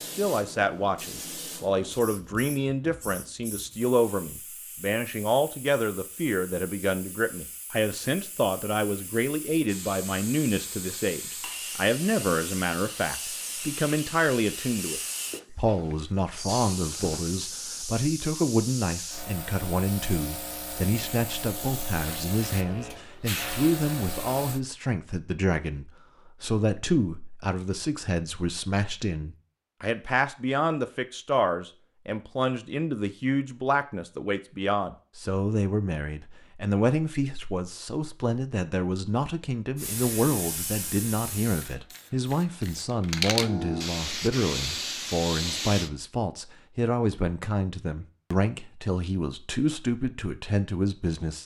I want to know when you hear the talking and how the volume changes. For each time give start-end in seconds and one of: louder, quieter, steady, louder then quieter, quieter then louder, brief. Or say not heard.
0.0-51.4 steady.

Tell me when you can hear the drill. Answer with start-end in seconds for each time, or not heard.
not heard.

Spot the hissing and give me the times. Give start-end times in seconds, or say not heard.
0.0-24.6, 39.8-45.9.